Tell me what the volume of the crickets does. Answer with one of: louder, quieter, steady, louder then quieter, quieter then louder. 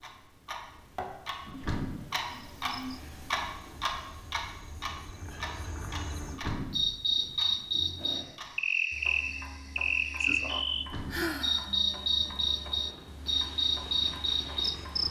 louder.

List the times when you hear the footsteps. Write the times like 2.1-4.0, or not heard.
not heard.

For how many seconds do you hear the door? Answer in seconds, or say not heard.
2 s.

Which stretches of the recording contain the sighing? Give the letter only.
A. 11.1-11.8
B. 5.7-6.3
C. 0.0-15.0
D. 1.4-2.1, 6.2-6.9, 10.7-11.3
A.